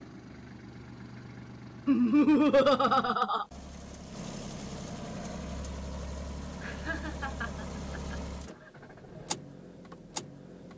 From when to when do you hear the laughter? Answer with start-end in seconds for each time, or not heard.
1.9-3.5, 6.6-8.2.